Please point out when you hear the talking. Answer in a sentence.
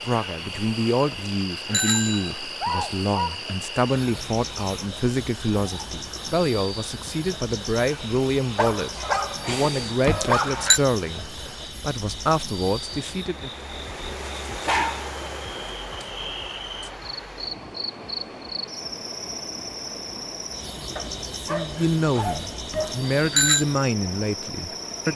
You can hear the talking from 0.1 to 13.5 s and from 21.3 to 25.1 s.